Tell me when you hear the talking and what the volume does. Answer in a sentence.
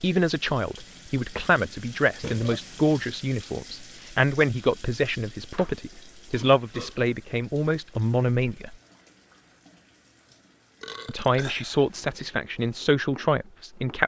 You can hear the talking from 0.0 to 8.8 s, at a steady volume; and briefly from 11.1 to 14.0 s.